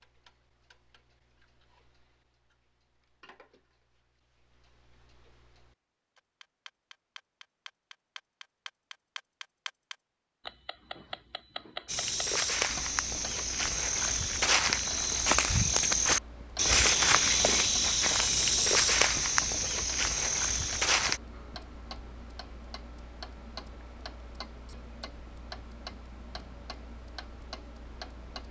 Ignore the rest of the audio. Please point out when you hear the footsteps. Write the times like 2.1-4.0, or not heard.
11.8-21.2.